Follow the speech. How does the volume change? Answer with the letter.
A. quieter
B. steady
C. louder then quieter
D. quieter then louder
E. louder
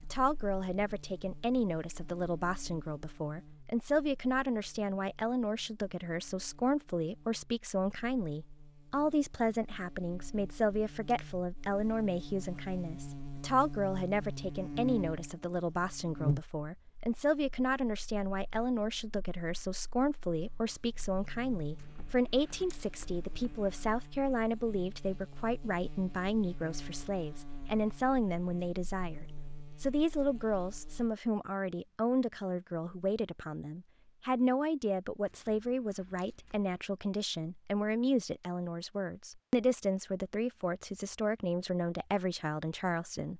B.